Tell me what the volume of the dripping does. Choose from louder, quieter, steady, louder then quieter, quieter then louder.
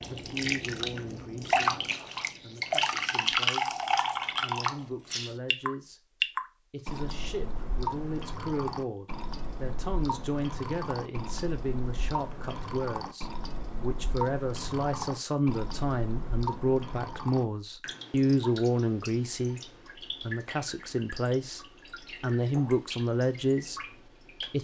quieter.